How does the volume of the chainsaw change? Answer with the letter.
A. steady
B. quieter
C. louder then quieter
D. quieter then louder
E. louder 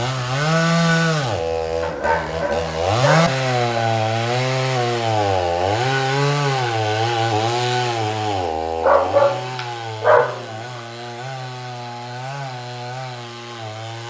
B.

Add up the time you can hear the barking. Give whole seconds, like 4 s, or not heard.
4 s.